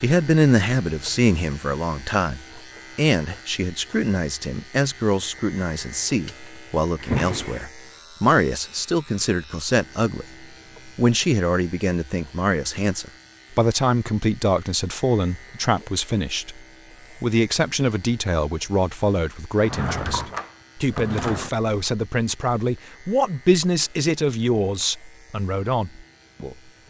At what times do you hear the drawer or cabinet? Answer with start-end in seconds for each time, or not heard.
7.0-7.7, 19.6-21.5.